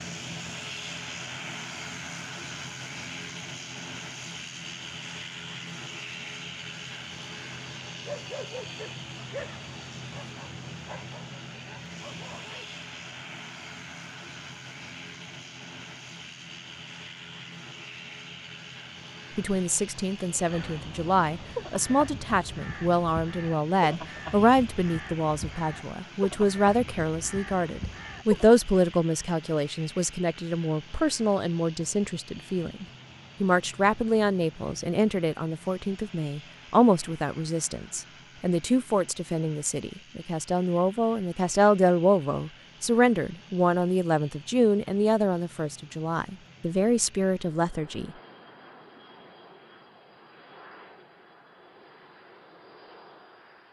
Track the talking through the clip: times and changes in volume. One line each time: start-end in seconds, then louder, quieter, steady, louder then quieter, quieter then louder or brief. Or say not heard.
19.4-48.1 steady.